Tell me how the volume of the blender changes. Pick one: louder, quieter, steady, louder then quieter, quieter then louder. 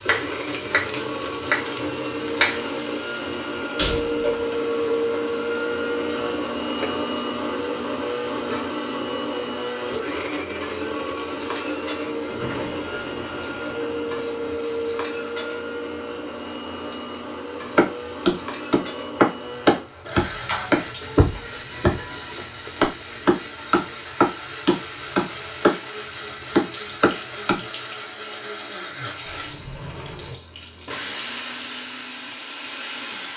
quieter.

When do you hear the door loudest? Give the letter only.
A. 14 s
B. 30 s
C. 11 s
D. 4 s
D.